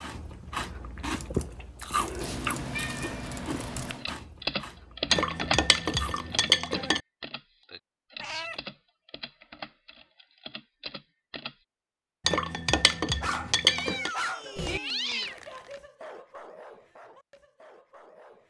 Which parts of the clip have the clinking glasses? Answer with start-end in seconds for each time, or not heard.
5.1-7.0, 12.2-14.1.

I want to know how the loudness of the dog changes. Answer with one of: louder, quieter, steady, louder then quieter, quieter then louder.
quieter.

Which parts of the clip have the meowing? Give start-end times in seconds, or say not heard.
2.2-4.0, 8.2-8.6, 13.7-15.3.